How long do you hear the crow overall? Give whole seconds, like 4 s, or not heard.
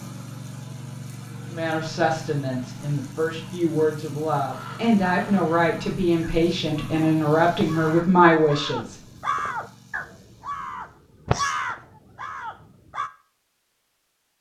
9 s.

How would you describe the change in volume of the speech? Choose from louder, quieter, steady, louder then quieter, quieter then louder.
louder.